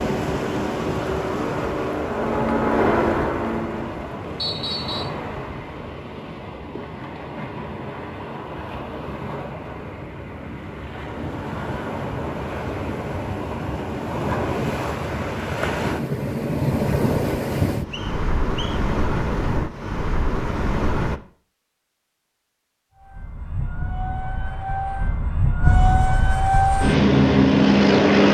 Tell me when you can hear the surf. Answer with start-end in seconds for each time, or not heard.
0.0-21.2.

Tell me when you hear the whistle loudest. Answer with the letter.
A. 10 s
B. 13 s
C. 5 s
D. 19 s
C.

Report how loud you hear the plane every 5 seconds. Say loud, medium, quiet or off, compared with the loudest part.
medium, off, off, off, quiet, loud.